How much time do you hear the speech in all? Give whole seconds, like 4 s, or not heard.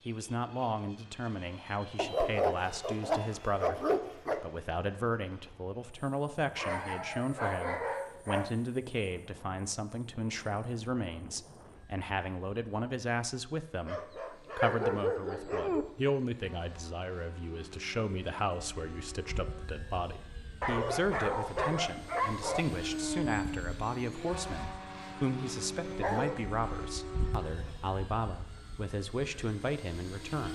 30 s.